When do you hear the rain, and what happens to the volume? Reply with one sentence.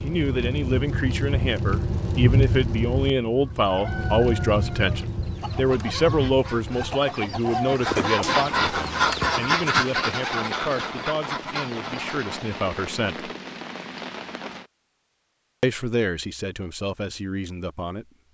The rain can be heard from 0.0 to 14.7 s, getting quieter.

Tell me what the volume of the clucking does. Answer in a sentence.
The loudness of the clucking goes up, then down.